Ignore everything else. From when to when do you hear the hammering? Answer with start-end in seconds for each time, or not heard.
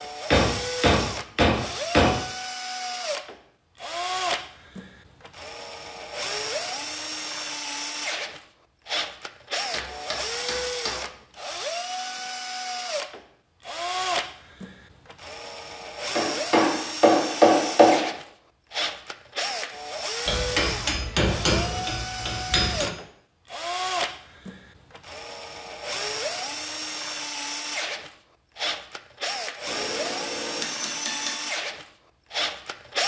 0.3-2.1, 9.7-11.1, 16.1-18.1, 20.2-22.9, 29.6-31.4.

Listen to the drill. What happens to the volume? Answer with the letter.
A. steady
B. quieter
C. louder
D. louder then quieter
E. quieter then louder
A.